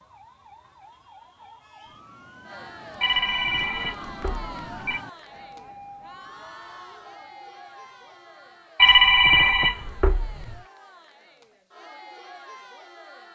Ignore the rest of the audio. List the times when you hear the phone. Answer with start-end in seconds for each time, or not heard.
3.0-5.0, 8.8-10.6.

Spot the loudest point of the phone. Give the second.
9 s.